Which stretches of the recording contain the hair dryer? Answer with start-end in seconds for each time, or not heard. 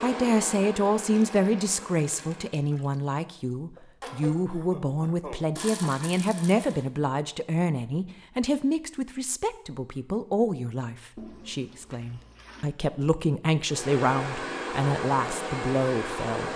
0.0-2.6, 13.7-16.5.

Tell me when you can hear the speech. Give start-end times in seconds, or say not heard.
0.0-16.5.